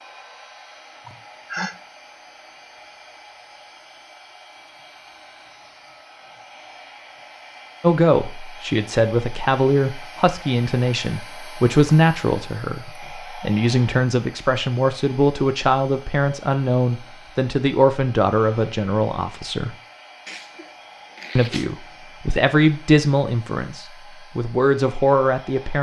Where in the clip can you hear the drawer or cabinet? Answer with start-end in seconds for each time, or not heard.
not heard.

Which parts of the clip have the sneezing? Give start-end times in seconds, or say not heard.
1.1-1.8, 20.2-21.7.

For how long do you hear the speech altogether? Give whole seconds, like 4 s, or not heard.
16 s.